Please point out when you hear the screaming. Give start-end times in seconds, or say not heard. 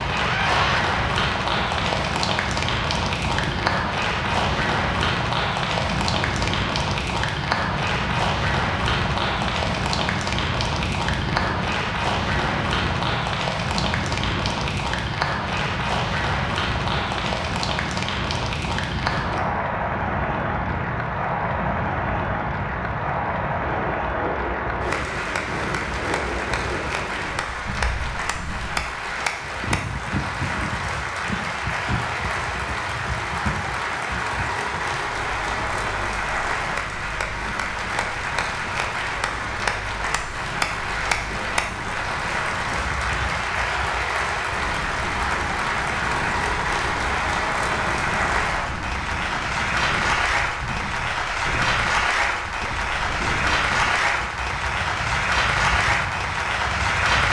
0.1-0.8.